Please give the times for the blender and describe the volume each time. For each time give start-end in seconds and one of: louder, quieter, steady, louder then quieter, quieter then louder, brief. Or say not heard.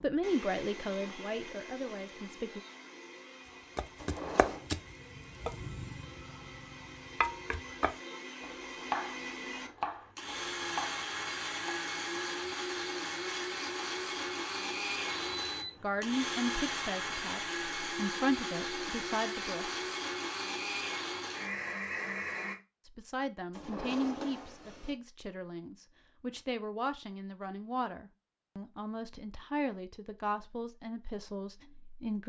0.0-22.6 louder.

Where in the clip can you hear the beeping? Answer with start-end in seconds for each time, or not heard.
15.1-16.0.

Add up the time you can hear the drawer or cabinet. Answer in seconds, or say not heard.
2 s.